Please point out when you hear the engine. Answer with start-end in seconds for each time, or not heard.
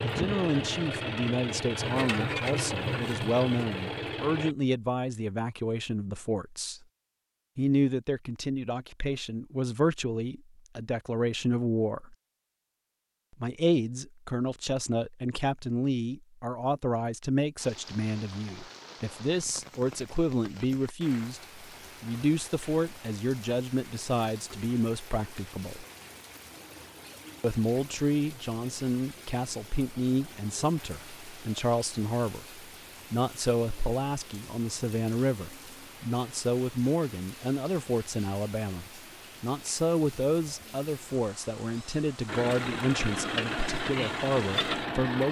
0.0-4.5, 42.2-45.2.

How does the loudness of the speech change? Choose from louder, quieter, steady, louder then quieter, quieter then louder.
steady.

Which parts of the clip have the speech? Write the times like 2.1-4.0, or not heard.
0.0-6.8, 7.5-12.2, 13.4-25.9, 27.4-45.2.